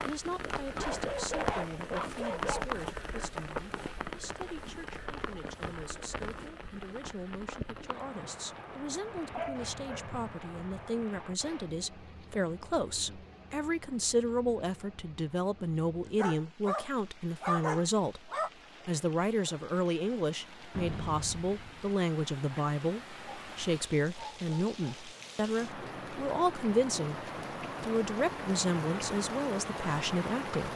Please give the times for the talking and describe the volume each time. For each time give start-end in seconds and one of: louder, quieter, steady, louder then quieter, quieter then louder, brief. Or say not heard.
0.1-30.7 louder.